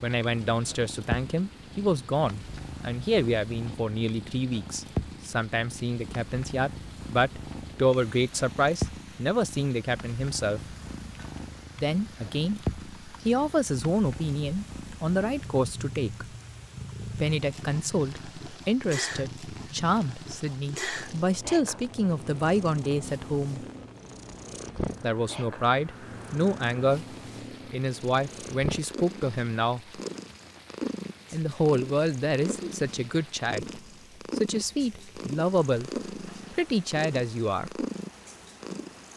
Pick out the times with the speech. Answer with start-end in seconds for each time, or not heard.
0.0-10.6, 11.8-16.2, 17.1-23.6, 25.0-27.1, 27.7-30.0, 31.3-37.9.